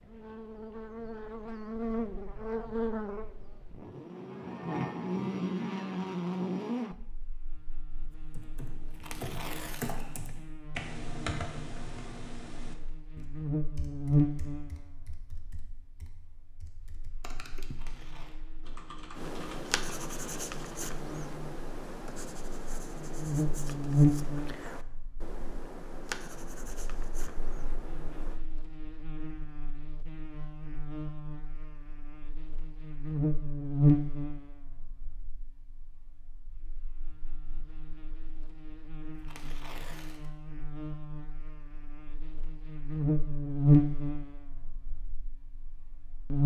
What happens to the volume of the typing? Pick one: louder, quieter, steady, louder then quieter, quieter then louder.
quieter then louder.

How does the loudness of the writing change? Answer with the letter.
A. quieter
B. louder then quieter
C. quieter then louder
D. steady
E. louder
A.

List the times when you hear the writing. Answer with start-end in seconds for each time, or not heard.
19.1-28.4.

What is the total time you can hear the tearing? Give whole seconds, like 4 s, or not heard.
3 s.